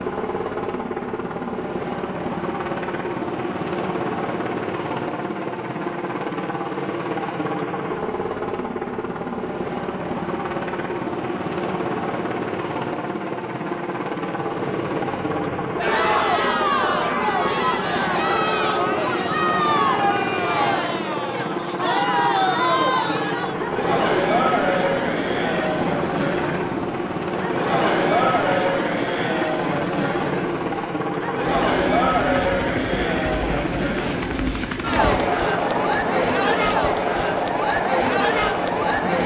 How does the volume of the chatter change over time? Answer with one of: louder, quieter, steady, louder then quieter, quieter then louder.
steady.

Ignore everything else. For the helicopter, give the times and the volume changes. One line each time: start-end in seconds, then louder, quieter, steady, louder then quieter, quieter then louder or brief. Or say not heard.
0.0-39.2 steady.